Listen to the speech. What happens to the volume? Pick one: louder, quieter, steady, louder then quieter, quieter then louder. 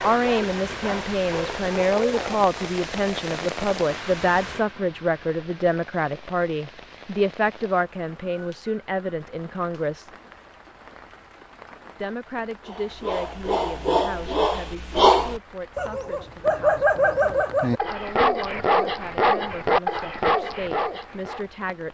quieter.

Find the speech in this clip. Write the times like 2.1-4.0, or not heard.
0.0-10.1, 11.9-21.9.